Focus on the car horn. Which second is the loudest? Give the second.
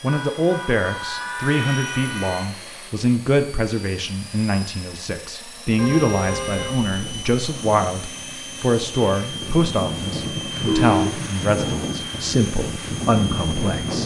11 s.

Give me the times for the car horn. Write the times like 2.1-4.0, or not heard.
0.1-2.5, 5.8-6.8, 10.3-11.3.